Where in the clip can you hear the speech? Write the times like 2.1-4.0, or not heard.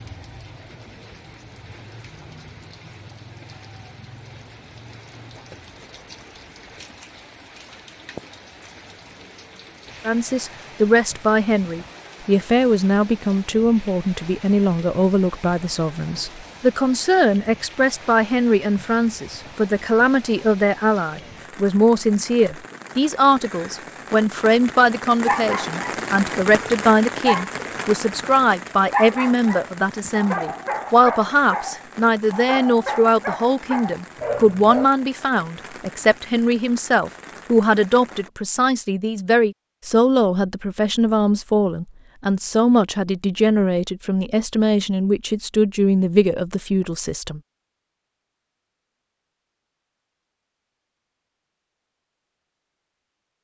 10.1-47.4.